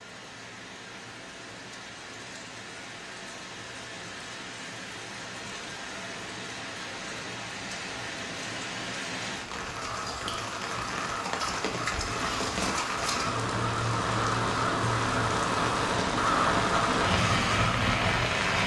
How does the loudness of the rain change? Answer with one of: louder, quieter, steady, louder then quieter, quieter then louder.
louder.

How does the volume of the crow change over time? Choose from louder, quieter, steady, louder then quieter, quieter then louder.
louder.